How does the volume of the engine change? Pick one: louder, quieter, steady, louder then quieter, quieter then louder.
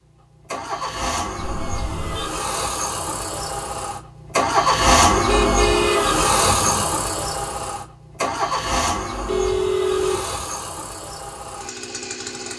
louder then quieter.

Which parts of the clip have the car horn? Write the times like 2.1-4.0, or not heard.
1.4-2.3, 5.2-6.9, 9.2-10.4.